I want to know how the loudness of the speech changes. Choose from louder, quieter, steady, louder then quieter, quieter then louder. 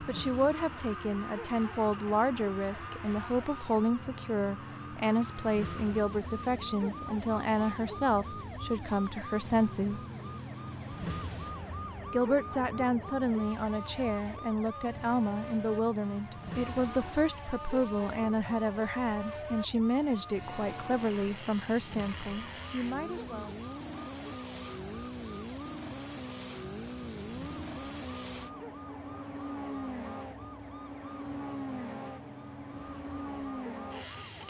steady.